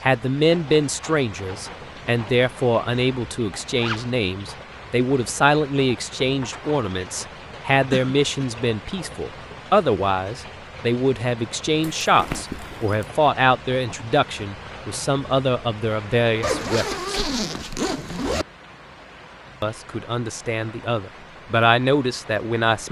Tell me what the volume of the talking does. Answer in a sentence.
The loudness of the talking stays about the same.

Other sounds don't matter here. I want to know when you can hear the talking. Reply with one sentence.
The talking can be heard from 0.0 to 17.0 s and from 19.6 to 22.8 s.